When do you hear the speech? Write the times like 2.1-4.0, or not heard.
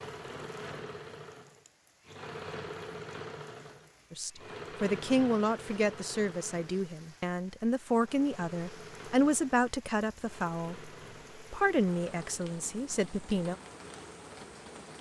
4.1-13.6.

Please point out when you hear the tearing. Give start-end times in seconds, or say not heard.
not heard.